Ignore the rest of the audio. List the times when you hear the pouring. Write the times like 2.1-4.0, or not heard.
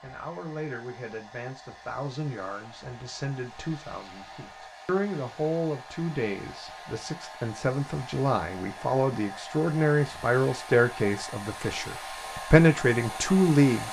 not heard.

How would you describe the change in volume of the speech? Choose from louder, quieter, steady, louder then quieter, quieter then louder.
louder.